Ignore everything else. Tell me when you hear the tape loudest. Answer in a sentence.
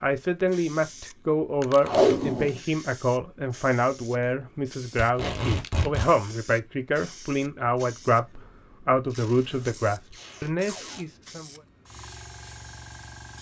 The volume of the tape peaks at 2 seconds.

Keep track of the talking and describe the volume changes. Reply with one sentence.
The volume of the talking stays about the same.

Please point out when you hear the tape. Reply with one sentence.
You can hear the tape from 1.8 to 2.6 s, from 5.0 to 6.1 s and from 9.1 to 11.1 s.